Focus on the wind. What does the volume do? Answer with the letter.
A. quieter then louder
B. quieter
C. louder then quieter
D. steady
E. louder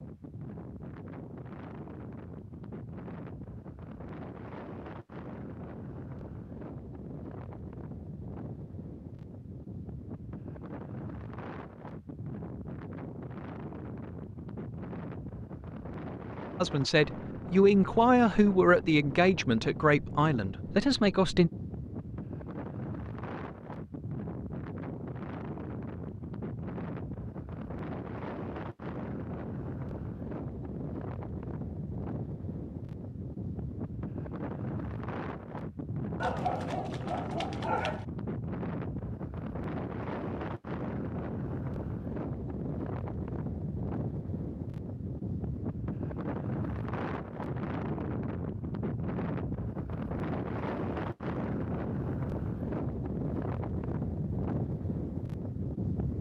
E.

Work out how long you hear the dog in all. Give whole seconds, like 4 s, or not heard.
2 s.